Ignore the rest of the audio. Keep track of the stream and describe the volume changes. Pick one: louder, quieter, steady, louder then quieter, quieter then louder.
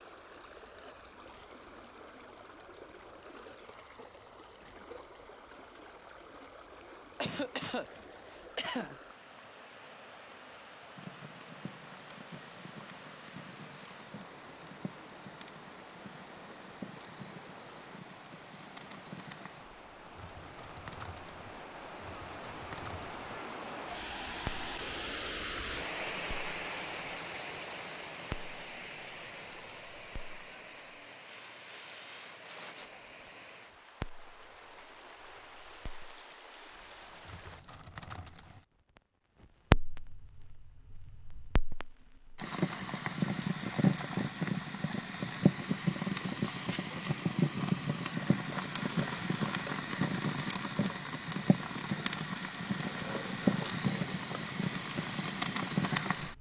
louder then quieter.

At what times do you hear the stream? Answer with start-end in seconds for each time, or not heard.
0.0-37.6.